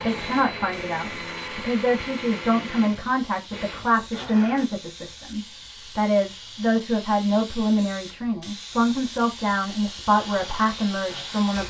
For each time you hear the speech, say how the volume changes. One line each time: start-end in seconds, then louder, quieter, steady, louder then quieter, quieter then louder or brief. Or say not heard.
0.0-11.6 steady.